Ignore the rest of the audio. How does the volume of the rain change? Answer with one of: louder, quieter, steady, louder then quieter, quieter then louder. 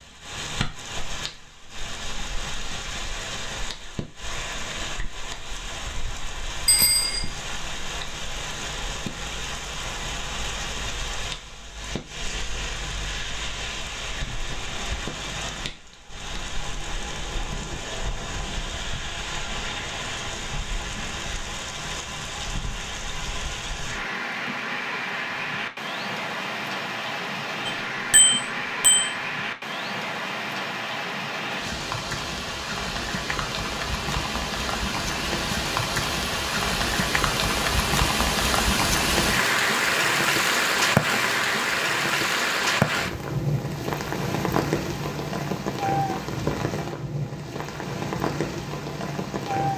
louder.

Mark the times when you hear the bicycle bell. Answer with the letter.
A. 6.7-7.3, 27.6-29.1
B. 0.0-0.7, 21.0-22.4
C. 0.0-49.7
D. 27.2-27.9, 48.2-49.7
A.